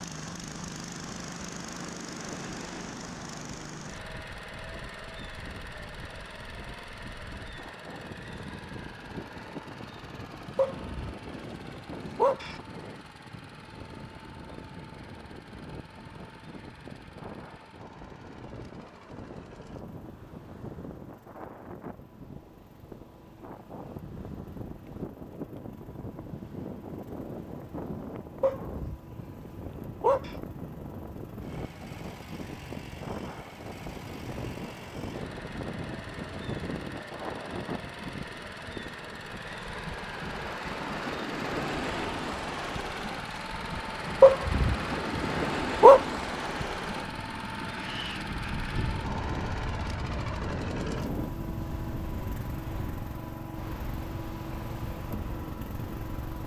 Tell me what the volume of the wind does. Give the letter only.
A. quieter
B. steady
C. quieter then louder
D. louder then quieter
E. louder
E.